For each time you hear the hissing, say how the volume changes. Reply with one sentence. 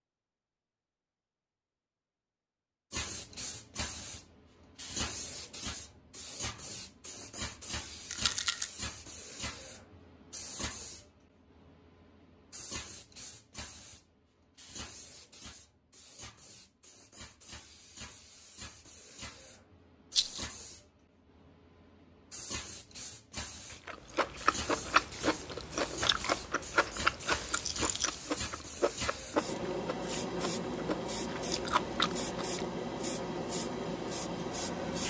You can hear the hissing from 2.9 to 35.0 s, getting quieter then louder.